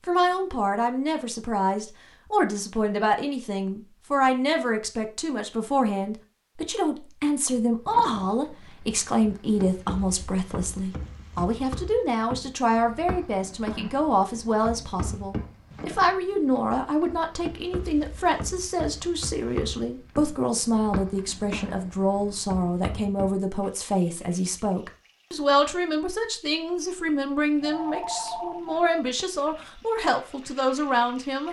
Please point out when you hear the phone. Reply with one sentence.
You can hear the phone from 27.6 to 28.8 s.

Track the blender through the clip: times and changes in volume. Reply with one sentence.
You can't hear the blender here.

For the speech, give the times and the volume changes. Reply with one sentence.
You can hear the speech from 0.1 to 31.4 s, at a steady volume.